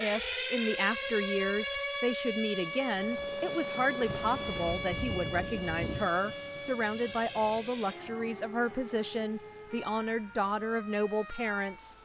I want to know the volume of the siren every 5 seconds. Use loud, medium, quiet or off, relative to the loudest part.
loud, medium, quiet.